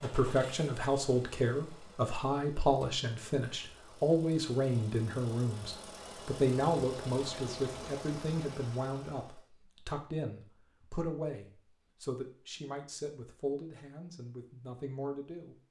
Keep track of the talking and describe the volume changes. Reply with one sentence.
The loudness of the talking goes down.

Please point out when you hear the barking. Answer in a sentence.
You can't hear the barking here.